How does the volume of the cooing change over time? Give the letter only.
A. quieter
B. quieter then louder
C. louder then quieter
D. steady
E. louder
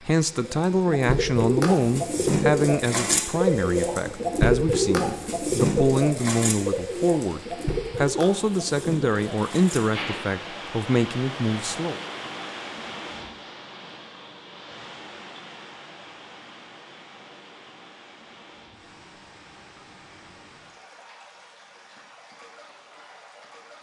A.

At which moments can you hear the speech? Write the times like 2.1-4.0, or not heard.
0.1-12.0.